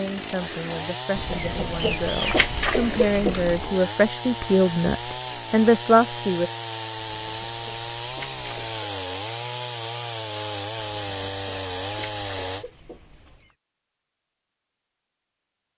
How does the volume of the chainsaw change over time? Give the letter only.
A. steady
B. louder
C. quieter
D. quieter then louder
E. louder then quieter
A.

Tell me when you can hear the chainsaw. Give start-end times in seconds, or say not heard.
0.0-12.7.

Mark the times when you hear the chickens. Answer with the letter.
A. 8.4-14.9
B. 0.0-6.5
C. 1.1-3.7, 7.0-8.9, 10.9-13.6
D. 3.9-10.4
C.